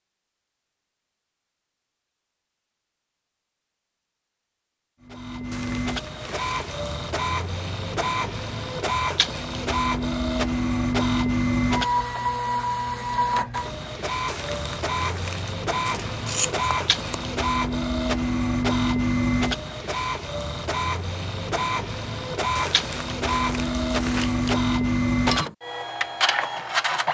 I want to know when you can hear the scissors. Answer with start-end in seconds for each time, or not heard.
15.8-17.2.